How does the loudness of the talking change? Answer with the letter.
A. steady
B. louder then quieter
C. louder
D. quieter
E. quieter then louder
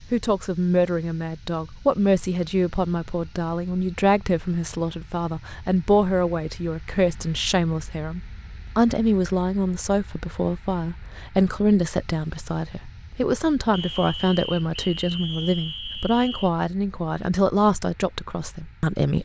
A.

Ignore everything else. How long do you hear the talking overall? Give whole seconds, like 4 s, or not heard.
19 s.